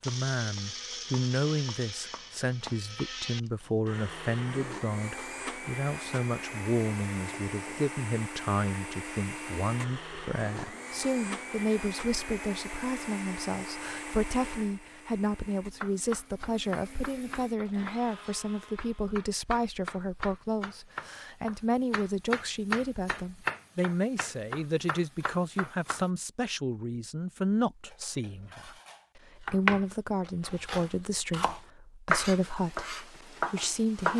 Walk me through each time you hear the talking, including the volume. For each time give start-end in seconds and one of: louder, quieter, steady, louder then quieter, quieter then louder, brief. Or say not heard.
0.1-34.1 steady.